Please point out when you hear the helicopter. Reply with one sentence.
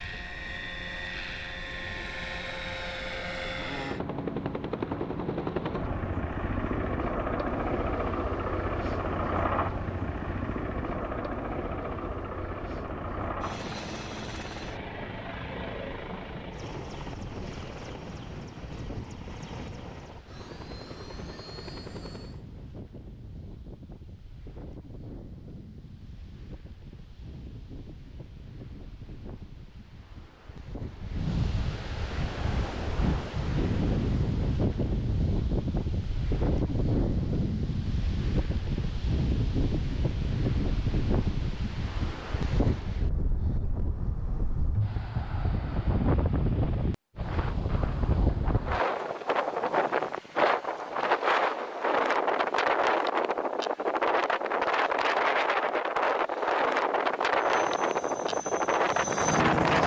The helicopter can be heard from 0.0 to 22.4 s and from 57.4 to 59.8 s.